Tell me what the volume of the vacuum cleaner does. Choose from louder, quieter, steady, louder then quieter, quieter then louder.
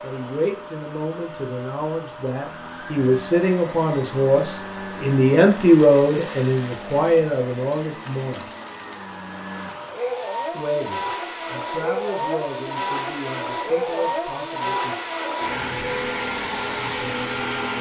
louder.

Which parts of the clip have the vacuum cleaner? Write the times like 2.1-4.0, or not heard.
0.0-17.7.